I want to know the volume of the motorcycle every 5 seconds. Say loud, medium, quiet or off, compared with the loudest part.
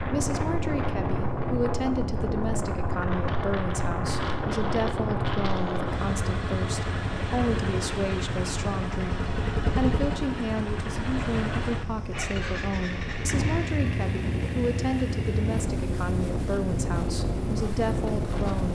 medium, loud, loud, loud.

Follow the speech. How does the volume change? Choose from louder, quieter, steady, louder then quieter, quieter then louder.
steady.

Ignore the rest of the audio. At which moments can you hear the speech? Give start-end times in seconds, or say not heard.
0.0-18.6.